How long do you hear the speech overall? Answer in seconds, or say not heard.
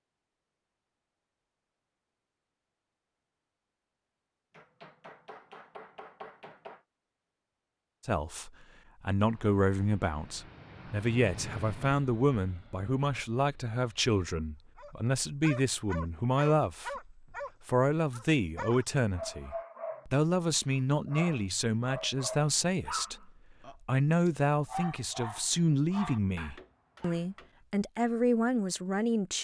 21 s.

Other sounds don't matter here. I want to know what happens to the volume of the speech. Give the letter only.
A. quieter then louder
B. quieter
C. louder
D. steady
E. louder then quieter
D.